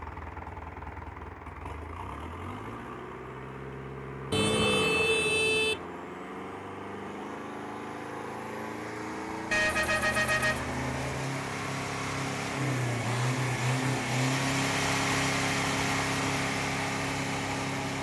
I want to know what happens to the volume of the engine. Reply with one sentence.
The volume of the engine goes up.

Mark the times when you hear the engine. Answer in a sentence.
The engine can be heard from 0.0 to 17.9 s.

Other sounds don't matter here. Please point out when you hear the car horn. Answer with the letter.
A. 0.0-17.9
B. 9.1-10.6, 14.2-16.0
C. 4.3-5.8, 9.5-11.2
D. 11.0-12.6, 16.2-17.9
C.